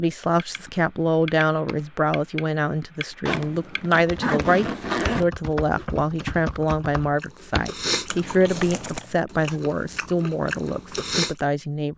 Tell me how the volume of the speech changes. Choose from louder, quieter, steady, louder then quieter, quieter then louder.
steady.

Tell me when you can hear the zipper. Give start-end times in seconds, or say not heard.
3.2-5.2.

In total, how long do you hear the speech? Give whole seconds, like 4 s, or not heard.
12 s.